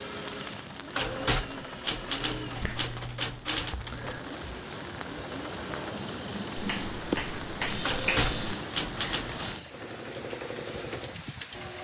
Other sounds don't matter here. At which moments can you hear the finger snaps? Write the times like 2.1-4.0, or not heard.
2.5-4.2, 6.5-8.3.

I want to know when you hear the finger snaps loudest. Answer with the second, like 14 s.
7 s.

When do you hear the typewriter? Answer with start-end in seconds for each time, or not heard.
0.9-3.8, 7.8-9.4.